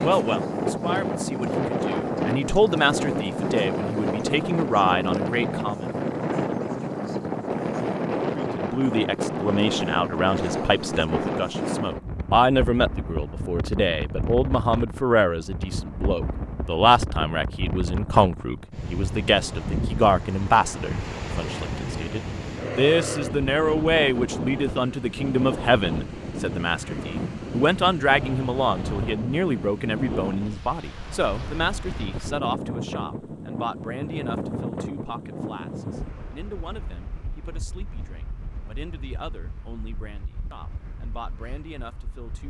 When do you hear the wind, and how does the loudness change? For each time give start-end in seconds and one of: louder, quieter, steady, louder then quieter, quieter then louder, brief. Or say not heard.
0.0-42.4 quieter.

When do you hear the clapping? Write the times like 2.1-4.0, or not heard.
not heard.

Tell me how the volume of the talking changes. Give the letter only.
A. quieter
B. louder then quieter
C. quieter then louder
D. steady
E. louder
A.